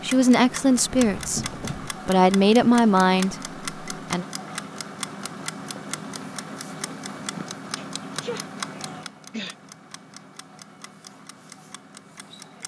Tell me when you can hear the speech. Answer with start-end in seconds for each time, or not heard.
0.0-4.2.